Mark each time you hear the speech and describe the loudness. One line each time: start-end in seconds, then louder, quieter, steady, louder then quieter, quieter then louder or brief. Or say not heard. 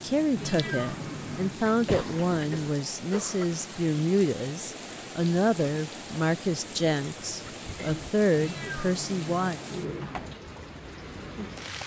0.0-9.6 steady.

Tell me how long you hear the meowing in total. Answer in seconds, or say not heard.
3 s.